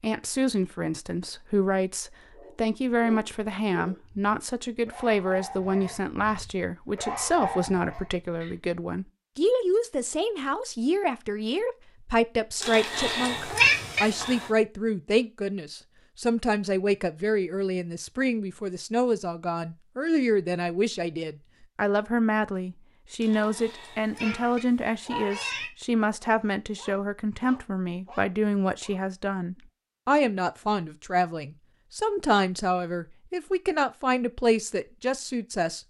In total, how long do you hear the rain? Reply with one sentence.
You can't hear the rain here.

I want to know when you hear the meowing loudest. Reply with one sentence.
The volume of the meowing peaks at 14 seconds.